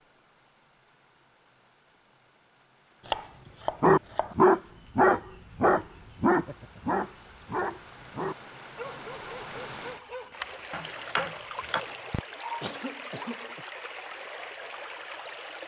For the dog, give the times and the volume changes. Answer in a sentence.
You can hear the dog from 3.8 to 12.7 s, getting quieter.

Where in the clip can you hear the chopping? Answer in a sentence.
The chopping can be heard from 3.0 to 4.4 s and from 10.7 to 11.9 s.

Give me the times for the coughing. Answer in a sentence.
The coughing can be heard from 12.1 to 13.7 s.